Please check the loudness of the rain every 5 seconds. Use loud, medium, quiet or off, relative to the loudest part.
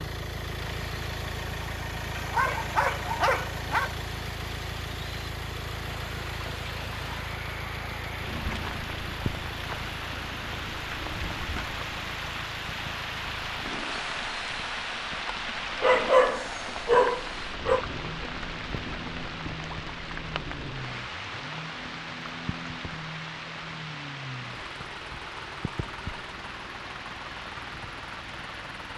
medium, loud, loud, loud, loud, medium.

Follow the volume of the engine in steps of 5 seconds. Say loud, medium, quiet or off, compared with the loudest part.
loud, loud, medium, medium, medium, medium.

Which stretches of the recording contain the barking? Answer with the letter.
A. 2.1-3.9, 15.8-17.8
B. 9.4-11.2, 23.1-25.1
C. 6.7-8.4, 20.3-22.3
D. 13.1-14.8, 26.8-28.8
A.